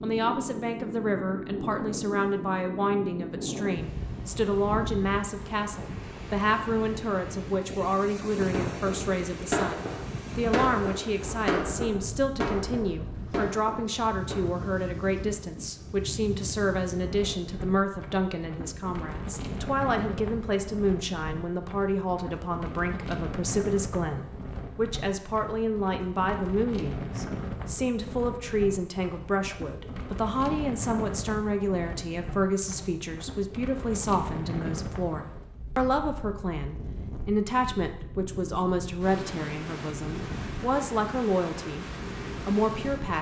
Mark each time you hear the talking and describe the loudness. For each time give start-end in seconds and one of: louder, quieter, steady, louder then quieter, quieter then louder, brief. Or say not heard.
0.0-41.9 steady
42.5-43.1 brief.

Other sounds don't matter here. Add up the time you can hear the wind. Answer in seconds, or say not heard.
43 s.